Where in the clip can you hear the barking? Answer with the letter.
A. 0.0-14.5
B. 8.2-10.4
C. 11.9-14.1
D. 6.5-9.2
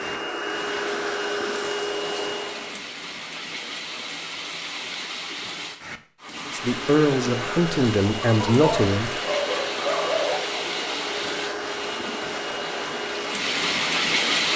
B.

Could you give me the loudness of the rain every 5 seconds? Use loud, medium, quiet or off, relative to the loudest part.
medium, medium, loud.